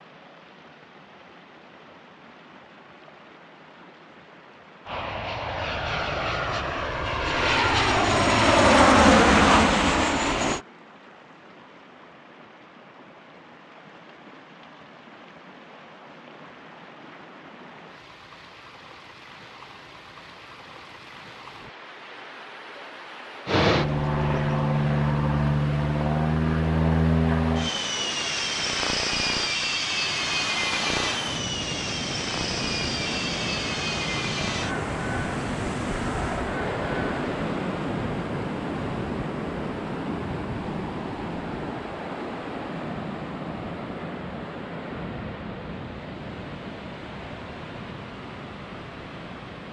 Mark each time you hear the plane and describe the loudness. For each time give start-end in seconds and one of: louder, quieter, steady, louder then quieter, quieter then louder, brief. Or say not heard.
4.8-10.6 louder
23.4-37.1 quieter.